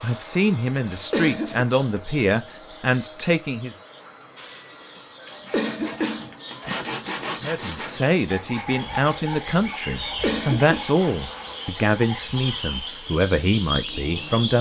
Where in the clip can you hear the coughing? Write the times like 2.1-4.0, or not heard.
0.9-1.6, 5.2-6.8, 10.0-10.8.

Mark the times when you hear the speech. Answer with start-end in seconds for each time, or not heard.
0.0-3.8, 7.4-14.5.